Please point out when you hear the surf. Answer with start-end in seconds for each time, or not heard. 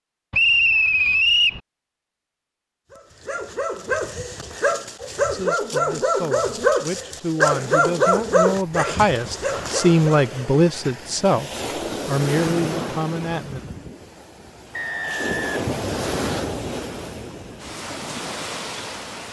7.5-19.2.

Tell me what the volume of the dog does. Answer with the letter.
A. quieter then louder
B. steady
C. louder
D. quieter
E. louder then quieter
E.